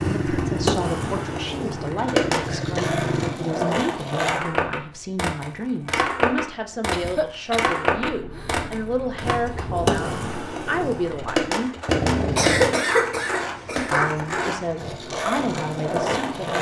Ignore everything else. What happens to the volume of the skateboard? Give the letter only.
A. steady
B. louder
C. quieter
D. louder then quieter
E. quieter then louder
A.